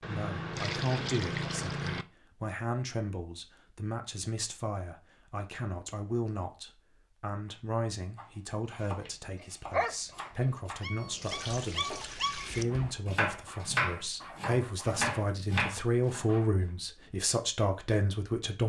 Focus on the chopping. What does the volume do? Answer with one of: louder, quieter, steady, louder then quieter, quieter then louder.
louder.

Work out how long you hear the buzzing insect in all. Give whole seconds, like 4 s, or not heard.
not heard.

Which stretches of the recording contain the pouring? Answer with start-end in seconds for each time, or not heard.
0.0-2.0, 11.1-12.7.